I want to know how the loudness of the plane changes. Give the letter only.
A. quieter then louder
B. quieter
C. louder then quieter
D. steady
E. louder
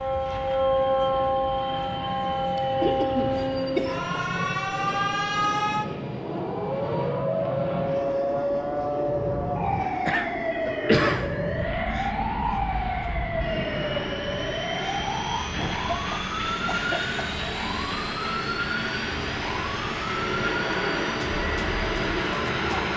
E.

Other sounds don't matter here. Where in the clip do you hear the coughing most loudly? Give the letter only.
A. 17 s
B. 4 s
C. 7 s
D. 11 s
D.